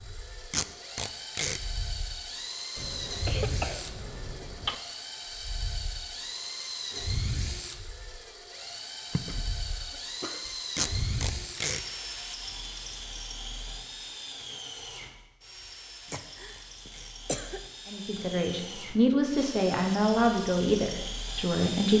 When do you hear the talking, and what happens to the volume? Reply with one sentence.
The talking can be heard from 17.9 to 21.9 s, getting louder then quieter.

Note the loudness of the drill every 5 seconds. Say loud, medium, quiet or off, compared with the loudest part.
loud, loud, loud, medium, loud.